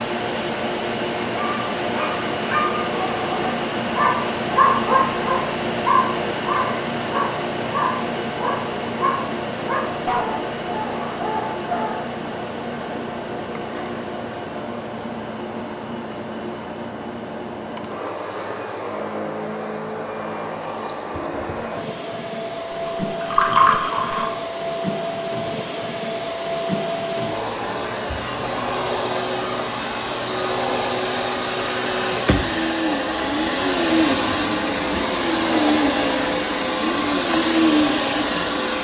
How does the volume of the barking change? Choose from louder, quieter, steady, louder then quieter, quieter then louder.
louder then quieter.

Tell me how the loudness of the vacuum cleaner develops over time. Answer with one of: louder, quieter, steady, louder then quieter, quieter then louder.
quieter then louder.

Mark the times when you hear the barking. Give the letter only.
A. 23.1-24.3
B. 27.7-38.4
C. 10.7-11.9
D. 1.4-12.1
D.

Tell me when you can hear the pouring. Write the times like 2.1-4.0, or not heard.
23.1-24.3.